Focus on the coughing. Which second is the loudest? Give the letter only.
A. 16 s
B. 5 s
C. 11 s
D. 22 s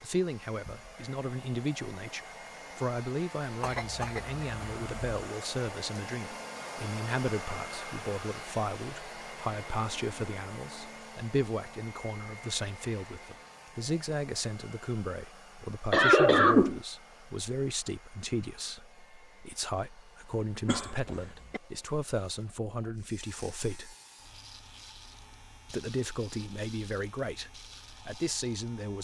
A.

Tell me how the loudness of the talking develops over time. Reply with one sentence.
The loudness of the talking stays about the same.